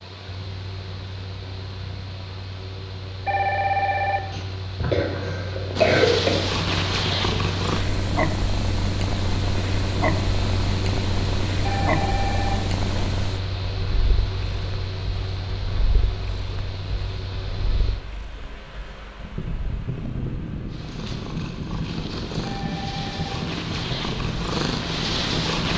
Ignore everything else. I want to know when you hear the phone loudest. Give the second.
4 s.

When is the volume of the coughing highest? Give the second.
6 s.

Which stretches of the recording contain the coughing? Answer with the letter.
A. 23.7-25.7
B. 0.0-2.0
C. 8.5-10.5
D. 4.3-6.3
D.